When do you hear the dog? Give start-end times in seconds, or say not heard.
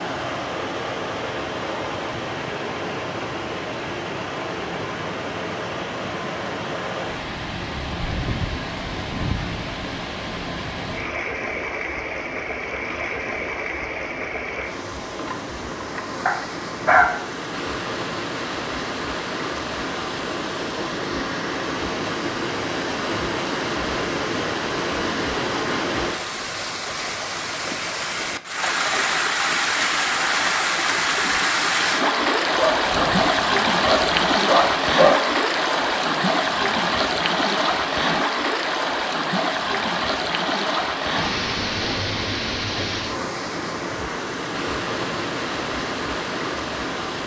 16.2-17.2, 32.5-35.2.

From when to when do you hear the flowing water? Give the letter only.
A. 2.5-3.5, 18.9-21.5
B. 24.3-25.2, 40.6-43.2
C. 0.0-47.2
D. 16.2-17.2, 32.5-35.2
C.